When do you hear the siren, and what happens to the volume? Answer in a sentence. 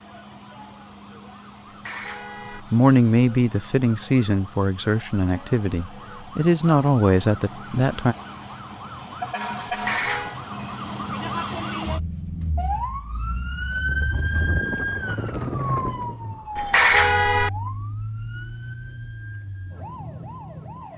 You can hear the siren from 0.0 to 20.9 s, getting louder then quieter.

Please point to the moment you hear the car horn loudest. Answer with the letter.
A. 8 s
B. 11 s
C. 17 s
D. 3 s
C.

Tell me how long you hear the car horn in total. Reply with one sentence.
The car horn can be heard for 3 seconds in total.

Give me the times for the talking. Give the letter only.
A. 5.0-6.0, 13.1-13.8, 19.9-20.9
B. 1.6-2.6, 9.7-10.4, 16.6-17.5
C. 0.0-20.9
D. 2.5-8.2
D.